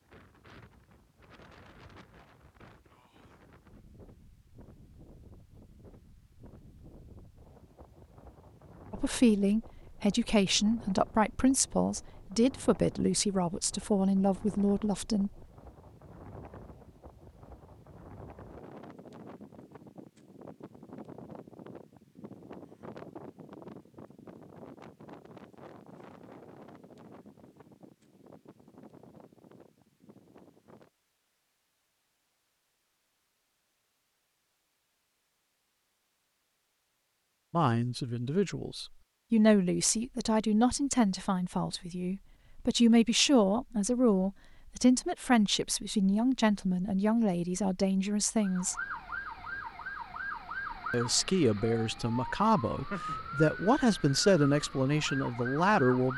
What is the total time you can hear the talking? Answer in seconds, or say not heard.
23 s.